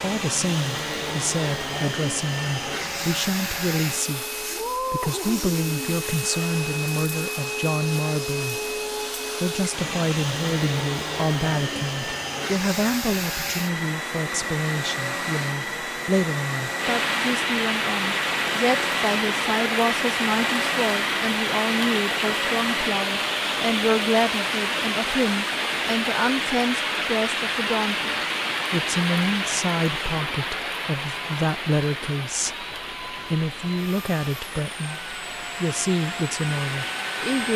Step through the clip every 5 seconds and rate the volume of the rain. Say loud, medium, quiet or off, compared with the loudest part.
off, off, off, loud, loud, loud, medium, medium.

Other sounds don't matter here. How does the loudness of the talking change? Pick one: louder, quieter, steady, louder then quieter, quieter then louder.
steady.